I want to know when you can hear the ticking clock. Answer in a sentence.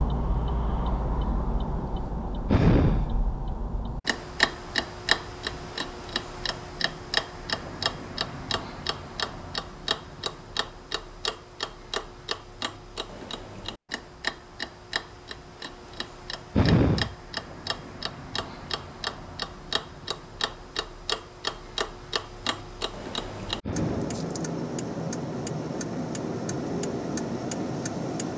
You can hear the ticking clock from 0.0 to 28.3 s.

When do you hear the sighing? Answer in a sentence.
The sighing can be heard from 2.5 to 3.1 s, from 16.6 to 17.1 s and from 23.6 to 24.2 s.